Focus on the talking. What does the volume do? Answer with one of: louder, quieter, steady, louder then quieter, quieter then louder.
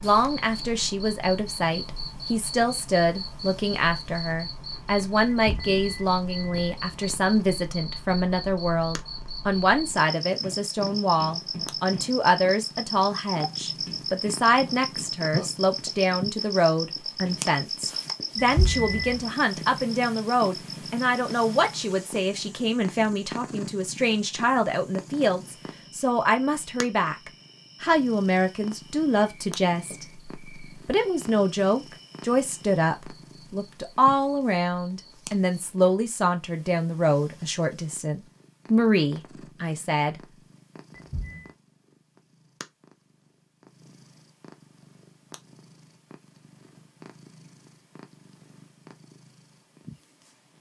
steady.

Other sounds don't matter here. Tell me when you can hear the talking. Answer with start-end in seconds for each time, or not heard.
0.0-40.1.